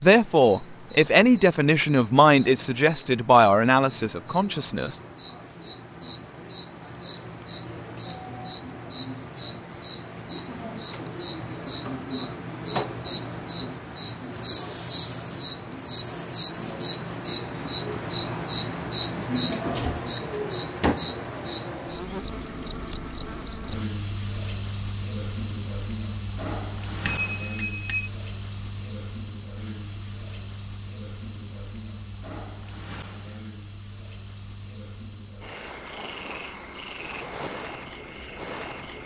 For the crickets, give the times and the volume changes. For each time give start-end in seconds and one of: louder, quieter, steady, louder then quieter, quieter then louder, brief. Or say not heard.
0.0-39.0 louder then quieter.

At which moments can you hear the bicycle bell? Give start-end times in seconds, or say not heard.
27.0-28.1.